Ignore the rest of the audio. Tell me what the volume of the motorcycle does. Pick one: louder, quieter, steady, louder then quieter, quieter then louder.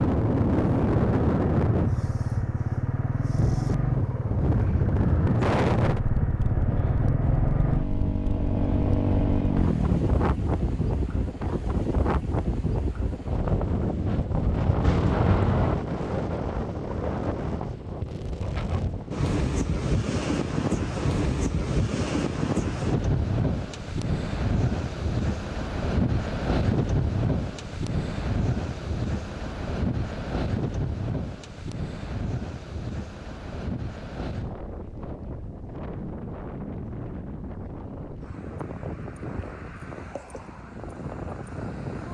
steady.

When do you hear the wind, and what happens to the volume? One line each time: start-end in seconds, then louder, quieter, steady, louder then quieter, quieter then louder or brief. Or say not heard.
0.0-42.0 quieter.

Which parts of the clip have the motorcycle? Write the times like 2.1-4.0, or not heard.
0.0-11.3.